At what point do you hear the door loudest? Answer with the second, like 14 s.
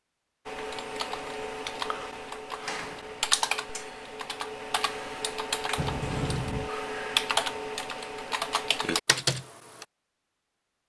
6 s.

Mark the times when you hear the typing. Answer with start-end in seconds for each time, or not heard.
0.5-9.8.